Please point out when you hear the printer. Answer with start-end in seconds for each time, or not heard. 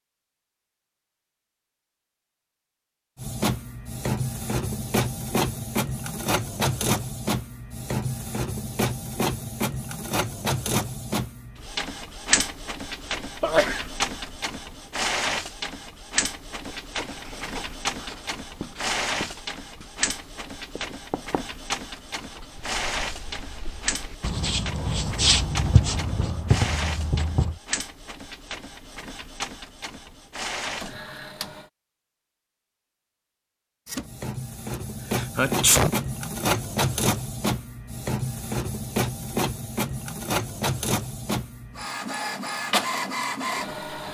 3.1-31.7, 33.9-44.0.